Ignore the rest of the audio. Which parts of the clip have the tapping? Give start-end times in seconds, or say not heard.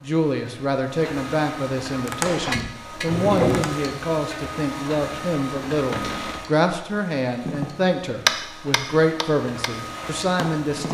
1.9-3.8, 7.5-10.8.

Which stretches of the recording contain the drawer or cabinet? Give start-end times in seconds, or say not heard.
2.2-3.6, 5.9-6.5.